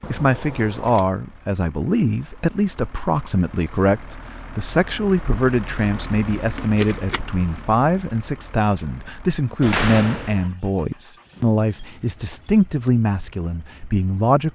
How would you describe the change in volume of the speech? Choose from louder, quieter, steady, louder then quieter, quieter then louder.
steady.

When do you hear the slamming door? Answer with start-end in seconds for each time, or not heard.
9.6-10.5.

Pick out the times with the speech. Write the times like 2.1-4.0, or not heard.
0.1-14.5.